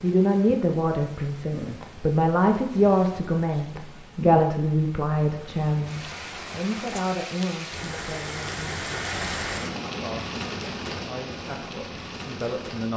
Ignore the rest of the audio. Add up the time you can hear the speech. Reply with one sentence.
You can hear the speech for 12 seconds altogether.